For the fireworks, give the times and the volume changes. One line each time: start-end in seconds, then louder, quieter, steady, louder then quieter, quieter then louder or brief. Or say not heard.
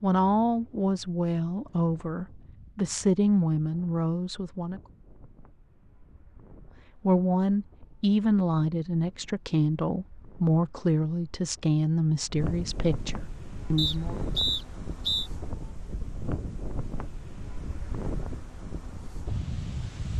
not heard.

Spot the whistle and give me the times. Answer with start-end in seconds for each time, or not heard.
13.8-15.3.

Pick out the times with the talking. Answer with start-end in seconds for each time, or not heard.
0.0-4.8, 7.0-14.2.